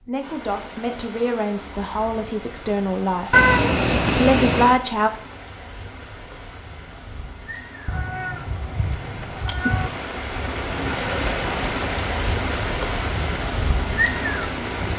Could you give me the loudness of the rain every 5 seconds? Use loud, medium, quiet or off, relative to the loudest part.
quiet, medium, loud.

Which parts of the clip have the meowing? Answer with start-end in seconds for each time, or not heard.
3.3-4.8, 7.8-9.9.